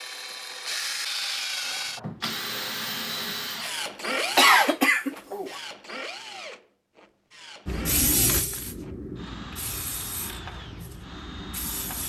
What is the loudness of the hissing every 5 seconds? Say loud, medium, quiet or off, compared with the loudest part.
off, loud, medium.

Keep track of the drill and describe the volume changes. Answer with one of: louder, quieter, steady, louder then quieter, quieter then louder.
quieter.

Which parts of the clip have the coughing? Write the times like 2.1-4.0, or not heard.
4.3-5.6.